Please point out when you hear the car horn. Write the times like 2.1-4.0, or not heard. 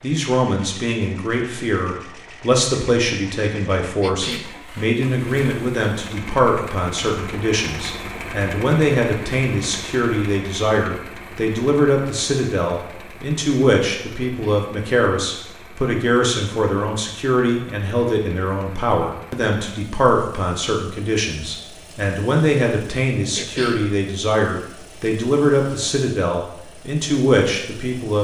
not heard.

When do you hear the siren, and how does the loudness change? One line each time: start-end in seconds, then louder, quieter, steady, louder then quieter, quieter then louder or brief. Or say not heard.
not heard.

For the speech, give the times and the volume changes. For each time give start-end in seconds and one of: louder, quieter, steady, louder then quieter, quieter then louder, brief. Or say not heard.
0.0-28.1 steady.